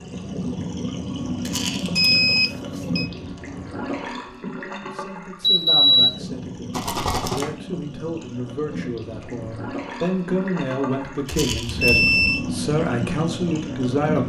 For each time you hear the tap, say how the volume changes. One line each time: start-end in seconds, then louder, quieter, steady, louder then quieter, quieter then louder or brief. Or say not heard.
0.0-14.2 quieter then louder.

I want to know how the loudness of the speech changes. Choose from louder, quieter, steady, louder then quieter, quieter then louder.
louder.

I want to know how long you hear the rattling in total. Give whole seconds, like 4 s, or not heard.
2 s.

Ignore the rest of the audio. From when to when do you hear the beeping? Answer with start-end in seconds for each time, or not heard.
1.9-3.0, 5.4-6.2, 11.4-12.4.